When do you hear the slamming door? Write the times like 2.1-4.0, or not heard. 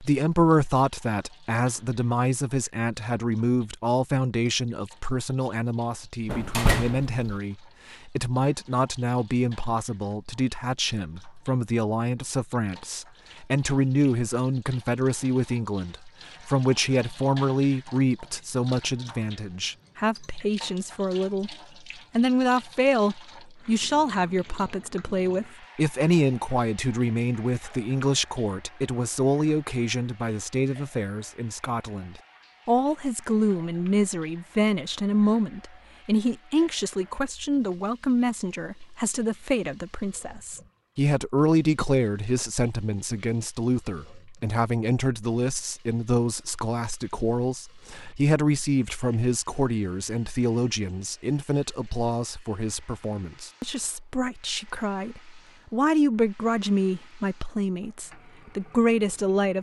6.2-7.2.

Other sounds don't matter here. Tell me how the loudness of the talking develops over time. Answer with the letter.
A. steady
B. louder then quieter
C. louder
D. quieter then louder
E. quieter
A.